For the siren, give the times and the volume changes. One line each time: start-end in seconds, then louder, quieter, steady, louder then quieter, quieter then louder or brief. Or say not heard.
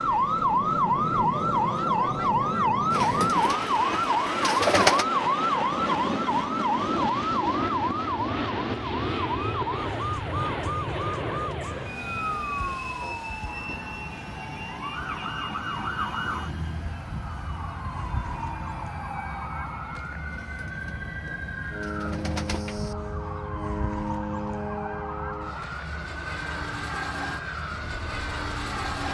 0.0-29.0 quieter.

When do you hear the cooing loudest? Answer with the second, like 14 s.
5 s.